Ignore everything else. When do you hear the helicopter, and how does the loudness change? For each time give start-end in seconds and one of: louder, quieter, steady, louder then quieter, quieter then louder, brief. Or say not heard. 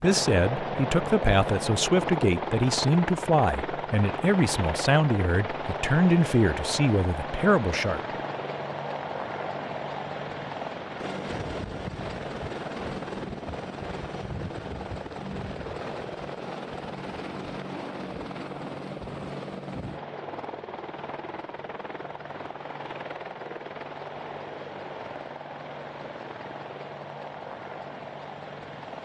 0.0-29.0 quieter.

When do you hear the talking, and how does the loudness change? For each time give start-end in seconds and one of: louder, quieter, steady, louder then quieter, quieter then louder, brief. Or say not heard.
0.0-8.0 steady.